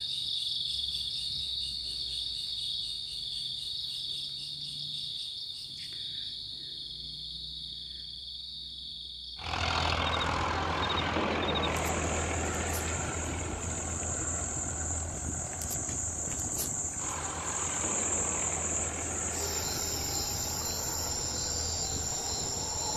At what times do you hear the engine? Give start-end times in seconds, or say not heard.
9.3-22.9.